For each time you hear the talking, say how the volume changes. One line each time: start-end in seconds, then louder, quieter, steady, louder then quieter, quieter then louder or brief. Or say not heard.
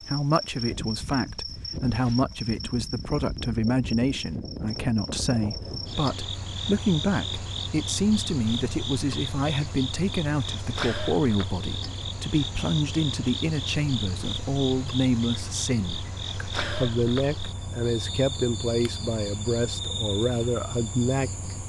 0.1-21.5 steady.